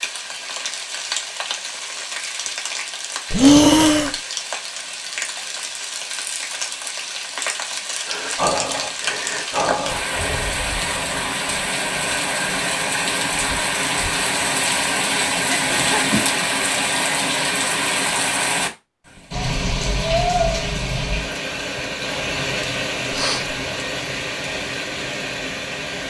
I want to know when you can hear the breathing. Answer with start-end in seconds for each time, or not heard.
3.3-4.2, 8.1-10.5, 15.4-16.2, 23.1-23.6.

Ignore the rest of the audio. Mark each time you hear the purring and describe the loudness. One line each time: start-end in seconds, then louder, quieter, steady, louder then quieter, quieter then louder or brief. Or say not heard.
not heard.